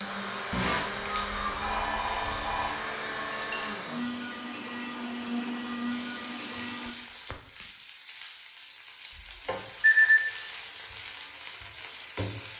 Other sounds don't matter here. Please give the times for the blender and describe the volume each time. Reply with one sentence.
The blender can be heard from 0.0 to 6.9 s, at a steady volume.